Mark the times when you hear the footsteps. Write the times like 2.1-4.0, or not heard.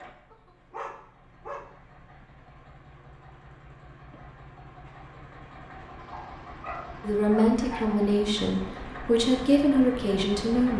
not heard.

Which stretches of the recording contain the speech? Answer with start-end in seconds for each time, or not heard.
7.0-10.7.